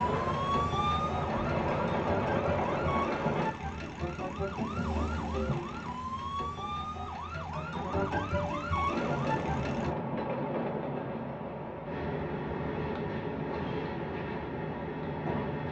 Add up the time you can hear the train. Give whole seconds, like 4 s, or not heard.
10 s.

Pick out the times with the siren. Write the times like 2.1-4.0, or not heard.
0.0-9.9.